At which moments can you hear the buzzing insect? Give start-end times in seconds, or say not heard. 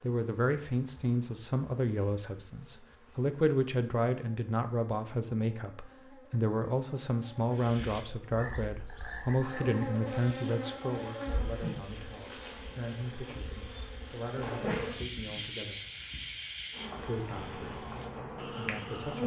0.0-19.2.